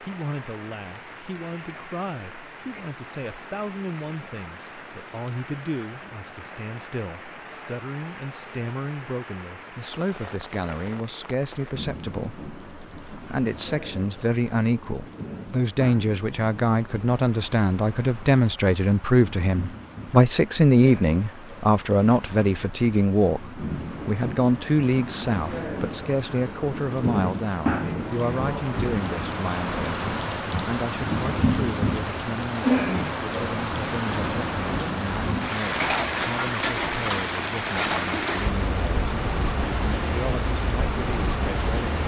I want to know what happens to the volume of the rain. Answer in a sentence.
The loudness of the rain goes up.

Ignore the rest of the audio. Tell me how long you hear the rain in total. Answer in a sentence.
You can hear the rain for 42 seconds altogether.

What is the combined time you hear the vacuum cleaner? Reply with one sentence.
You can't hear the vacuum cleaner here.